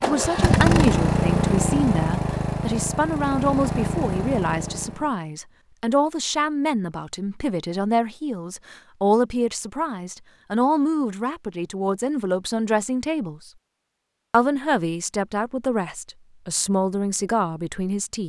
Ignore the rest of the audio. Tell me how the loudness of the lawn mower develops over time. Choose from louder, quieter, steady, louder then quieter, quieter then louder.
quieter.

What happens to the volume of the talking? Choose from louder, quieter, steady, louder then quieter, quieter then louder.
steady.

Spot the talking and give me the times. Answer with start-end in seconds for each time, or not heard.
0.0-13.5, 14.3-18.2.